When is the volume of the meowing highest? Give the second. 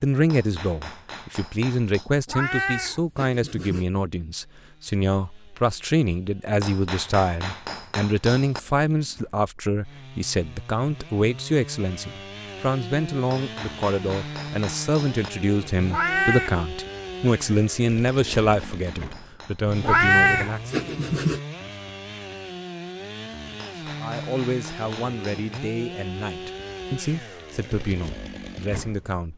20 s.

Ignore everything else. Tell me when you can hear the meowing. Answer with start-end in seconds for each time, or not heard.
2.2-3.9, 15.8-16.5, 19.8-21.4.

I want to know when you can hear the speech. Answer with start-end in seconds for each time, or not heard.
0.0-20.9, 23.9-29.3.